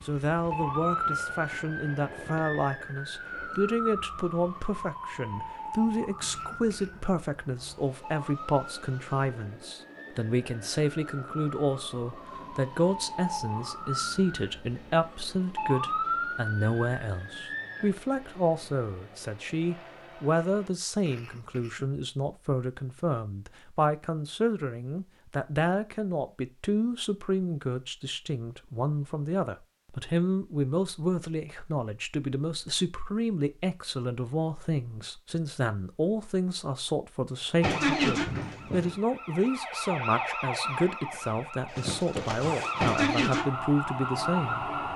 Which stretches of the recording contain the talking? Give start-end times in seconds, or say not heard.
0.1-44.7.